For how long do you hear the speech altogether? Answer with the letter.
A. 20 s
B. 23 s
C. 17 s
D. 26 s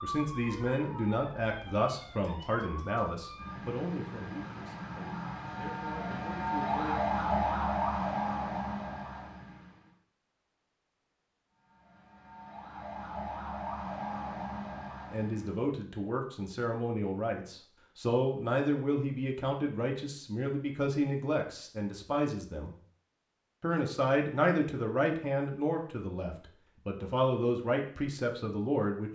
A.